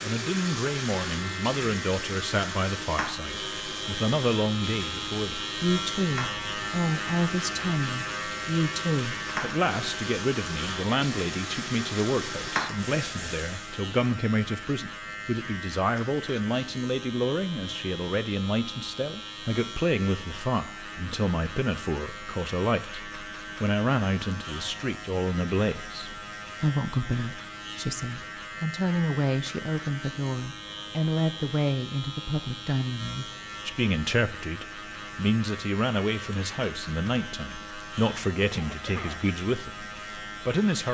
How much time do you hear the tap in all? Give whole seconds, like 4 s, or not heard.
14 s.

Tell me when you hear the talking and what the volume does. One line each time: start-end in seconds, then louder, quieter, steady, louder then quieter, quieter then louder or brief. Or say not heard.
0.0-40.9 steady.